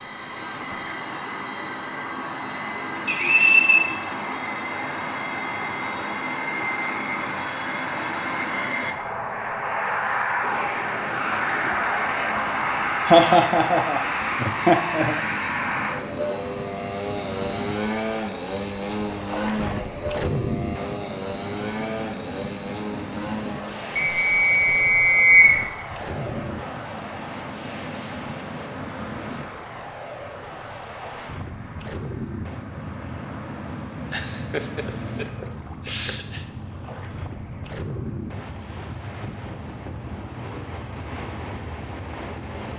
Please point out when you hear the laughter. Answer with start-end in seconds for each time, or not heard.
13.1-15.2, 34.1-36.5.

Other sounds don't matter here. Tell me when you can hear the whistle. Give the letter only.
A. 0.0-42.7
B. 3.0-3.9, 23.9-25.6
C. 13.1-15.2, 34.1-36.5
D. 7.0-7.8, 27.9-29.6
B.